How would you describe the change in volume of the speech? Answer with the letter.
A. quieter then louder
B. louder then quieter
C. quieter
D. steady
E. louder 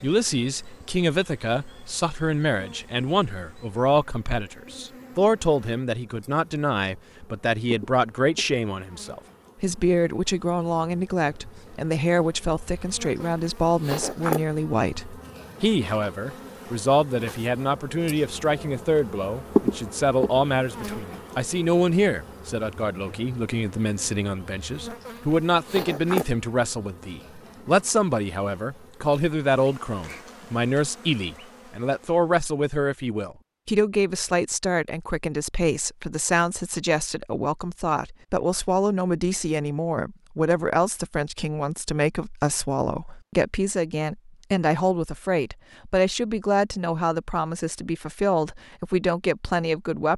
D.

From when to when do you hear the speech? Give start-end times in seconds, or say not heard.
0.0-50.1.